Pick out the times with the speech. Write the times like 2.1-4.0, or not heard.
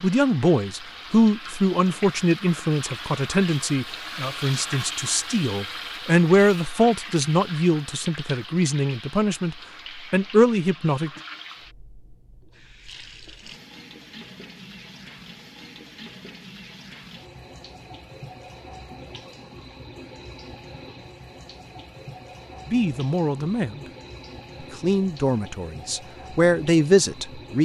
0.0-11.1, 22.7-23.8, 24.8-27.6.